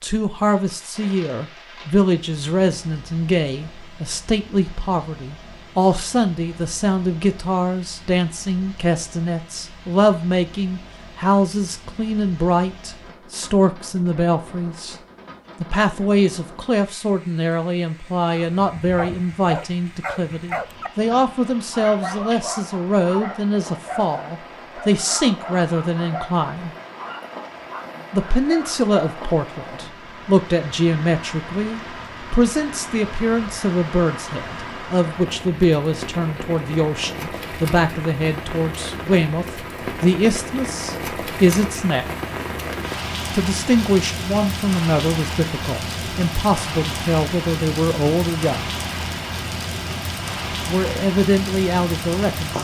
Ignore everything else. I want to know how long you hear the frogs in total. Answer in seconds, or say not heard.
not heard.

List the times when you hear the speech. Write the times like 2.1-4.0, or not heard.
0.0-14.9, 15.6-26.7, 28.1-42.1, 43.3-48.6, 50.6-52.5.